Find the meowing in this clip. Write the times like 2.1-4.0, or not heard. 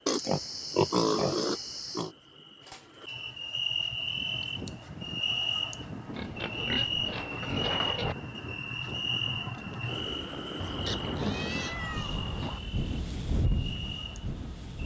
2.5-3.1, 10.6-12.6.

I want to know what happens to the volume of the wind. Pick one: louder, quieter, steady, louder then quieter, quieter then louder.
louder.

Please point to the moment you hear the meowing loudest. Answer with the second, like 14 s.
12 s.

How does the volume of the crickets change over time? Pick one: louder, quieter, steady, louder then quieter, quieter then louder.
louder then quieter.